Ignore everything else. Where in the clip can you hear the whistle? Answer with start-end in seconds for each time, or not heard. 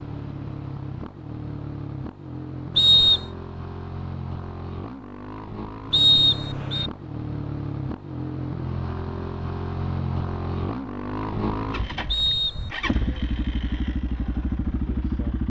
2.8-3.2, 5.9-6.9, 12.1-12.8.